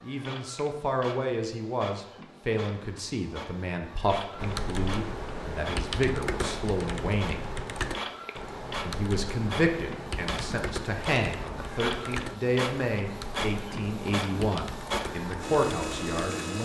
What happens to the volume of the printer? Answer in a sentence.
The volume of the printer goes up.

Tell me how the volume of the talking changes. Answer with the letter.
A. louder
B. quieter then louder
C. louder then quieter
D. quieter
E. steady
E.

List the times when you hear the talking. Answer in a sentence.
You can hear the talking from 0.0 to 7.5 s and from 8.8 to 16.5 s.